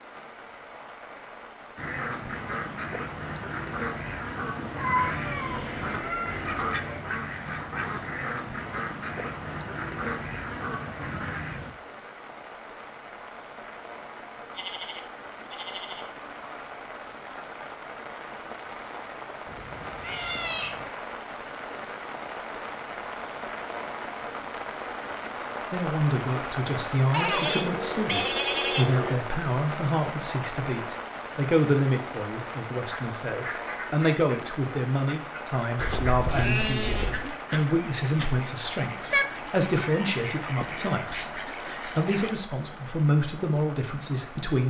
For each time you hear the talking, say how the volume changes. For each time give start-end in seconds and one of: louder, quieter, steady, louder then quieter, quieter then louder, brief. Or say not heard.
25.7-44.6 steady.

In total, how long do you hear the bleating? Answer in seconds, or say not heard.
7 s.